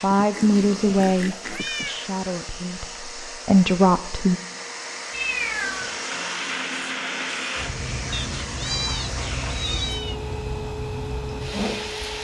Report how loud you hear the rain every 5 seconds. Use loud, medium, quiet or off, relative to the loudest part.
off, loud, loud.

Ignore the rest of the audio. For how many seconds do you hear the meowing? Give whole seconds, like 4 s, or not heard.
5 s.